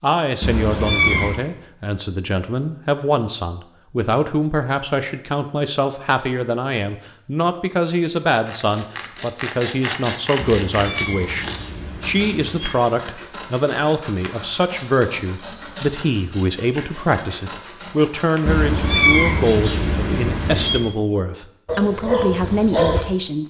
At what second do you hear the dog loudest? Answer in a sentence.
The volume of the dog peaks at 23 seconds.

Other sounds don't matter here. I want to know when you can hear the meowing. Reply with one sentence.
You can hear the meowing from 0.4 to 1.4 s, from 10.6 to 12.7 s and from 18.4 to 20.9 s.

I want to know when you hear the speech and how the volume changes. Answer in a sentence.
The speech can be heard from 0.0 to 23.4 s, at a steady volume.